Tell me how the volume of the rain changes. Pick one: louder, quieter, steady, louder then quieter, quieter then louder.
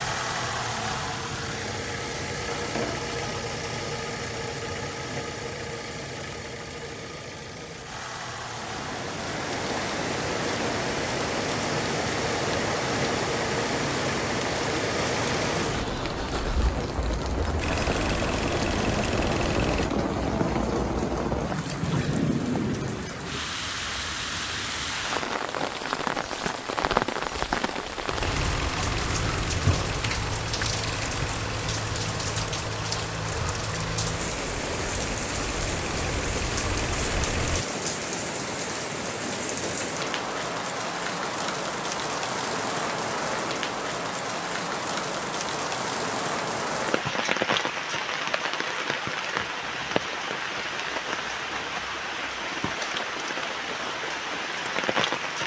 steady.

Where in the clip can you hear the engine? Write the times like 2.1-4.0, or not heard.
0.0-19.9, 28.2-37.6.